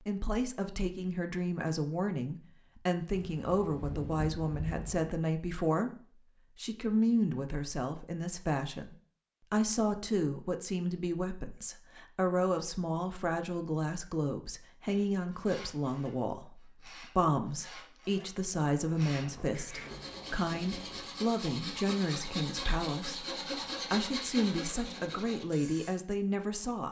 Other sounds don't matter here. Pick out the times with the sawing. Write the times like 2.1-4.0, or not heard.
14.8-25.9.